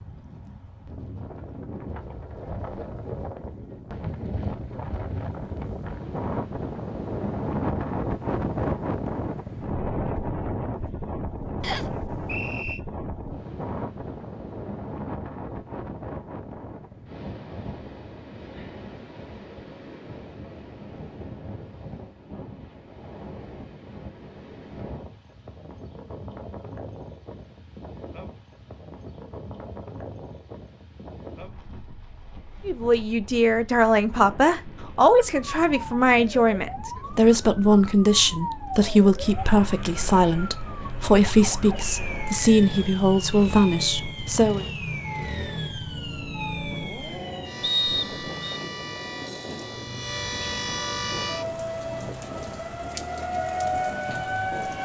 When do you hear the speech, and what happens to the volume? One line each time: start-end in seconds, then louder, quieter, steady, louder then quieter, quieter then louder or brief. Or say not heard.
32.6-44.6 steady.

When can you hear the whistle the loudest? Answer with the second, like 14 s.
48 s.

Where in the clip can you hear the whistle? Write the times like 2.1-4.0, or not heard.
11.6-12.8, 47.6-48.6.